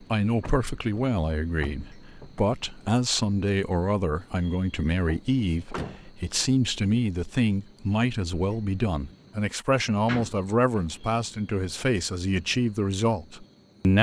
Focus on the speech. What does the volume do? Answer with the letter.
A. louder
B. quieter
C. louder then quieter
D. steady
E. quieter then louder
D.